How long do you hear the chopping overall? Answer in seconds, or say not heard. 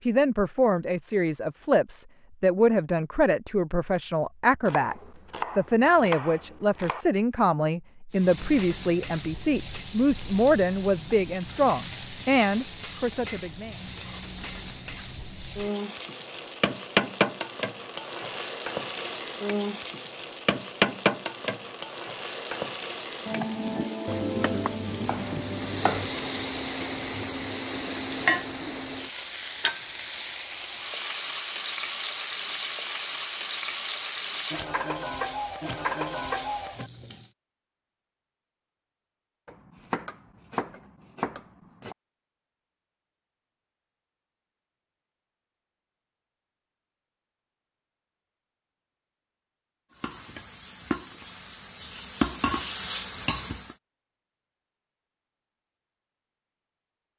7 s.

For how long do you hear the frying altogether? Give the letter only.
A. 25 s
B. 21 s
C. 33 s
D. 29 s
C.